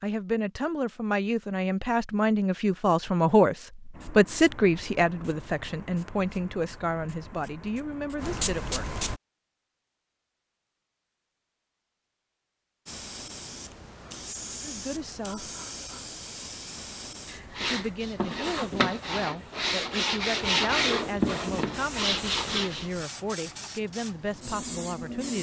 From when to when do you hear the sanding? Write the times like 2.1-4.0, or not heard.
17.6-22.9.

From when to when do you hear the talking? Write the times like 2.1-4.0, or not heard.
0.0-8.8, 14.6-15.5, 17.6-25.3.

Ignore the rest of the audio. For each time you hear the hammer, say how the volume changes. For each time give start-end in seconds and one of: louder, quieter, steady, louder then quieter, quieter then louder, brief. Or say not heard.
not heard.